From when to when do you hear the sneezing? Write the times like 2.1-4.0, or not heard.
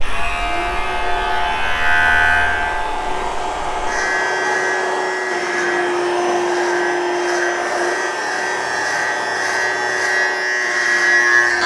not heard.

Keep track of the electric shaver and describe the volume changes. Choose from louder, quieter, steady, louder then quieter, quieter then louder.
quieter then louder.